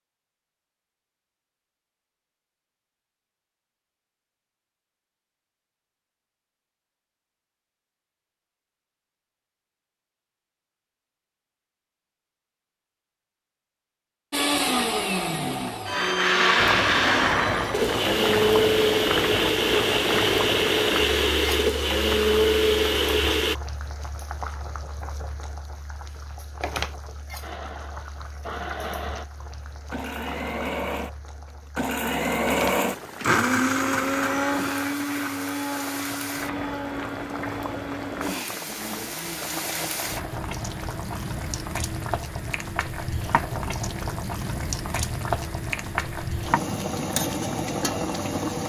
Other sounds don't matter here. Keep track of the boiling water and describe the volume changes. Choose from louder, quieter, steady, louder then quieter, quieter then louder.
quieter then louder.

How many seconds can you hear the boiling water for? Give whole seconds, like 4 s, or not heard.
32 s.